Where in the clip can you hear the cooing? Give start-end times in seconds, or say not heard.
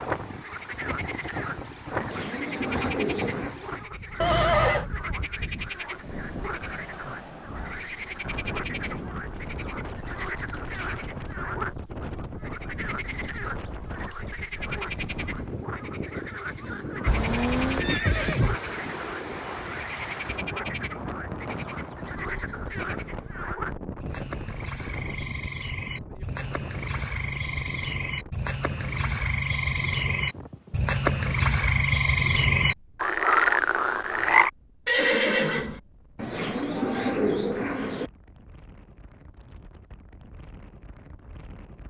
1.9-3.5, 36.1-38.1.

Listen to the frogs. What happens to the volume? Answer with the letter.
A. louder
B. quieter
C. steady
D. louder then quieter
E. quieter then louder
A.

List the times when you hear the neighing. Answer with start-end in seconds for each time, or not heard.
4.2-4.8, 17.1-18.6, 34.9-35.8.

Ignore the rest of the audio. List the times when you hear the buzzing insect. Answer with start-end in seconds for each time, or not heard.
not heard.